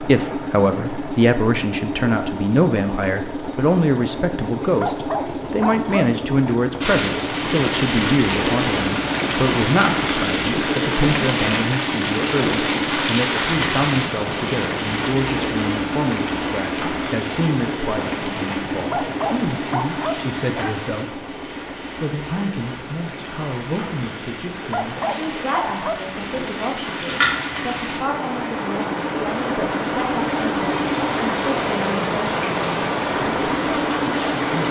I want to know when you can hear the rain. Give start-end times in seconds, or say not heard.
6.8-34.6.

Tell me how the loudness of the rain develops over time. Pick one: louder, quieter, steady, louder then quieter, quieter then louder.
quieter then louder.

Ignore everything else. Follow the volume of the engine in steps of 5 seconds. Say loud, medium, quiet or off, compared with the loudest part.
loud, loud, loud, loud, medium, medium, loud.